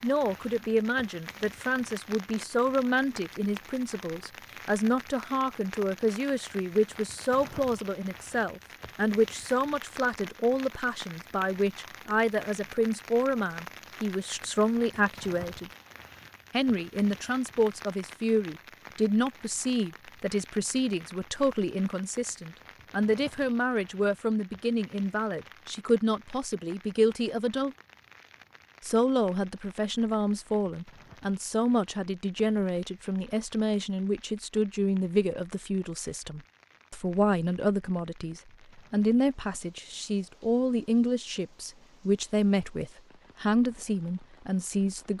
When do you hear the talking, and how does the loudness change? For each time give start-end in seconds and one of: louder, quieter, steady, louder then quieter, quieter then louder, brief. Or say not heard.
0.0-15.7 steady
16.5-27.8 steady
28.8-45.1 steady.